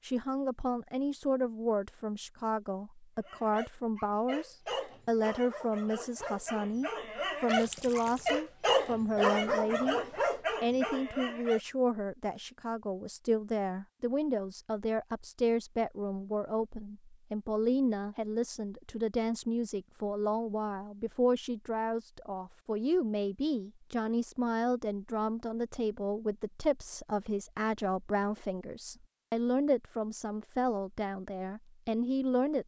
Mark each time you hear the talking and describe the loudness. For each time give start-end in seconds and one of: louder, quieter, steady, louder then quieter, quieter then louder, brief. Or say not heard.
0.0-10.0 steady
10.6-32.6 steady.